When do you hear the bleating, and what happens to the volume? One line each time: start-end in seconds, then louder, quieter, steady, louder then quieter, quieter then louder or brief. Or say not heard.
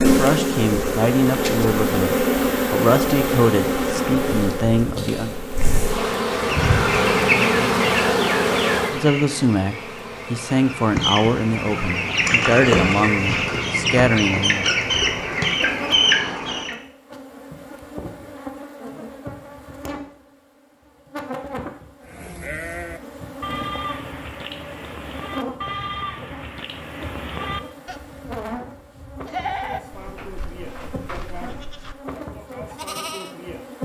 22.0-31.9 quieter
32.6-33.4 brief.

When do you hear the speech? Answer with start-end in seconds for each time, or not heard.
0.0-5.3, 8.8-14.8.